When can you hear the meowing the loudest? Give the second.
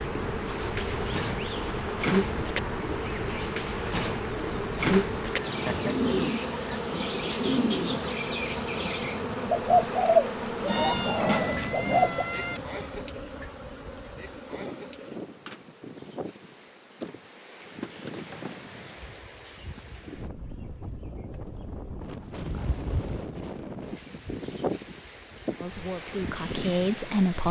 11 s.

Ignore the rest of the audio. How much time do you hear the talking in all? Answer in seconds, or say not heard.
2 s.